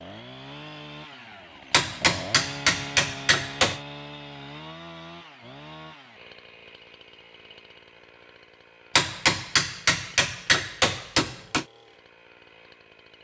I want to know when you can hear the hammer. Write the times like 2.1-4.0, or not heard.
1.7-3.8, 8.9-11.7.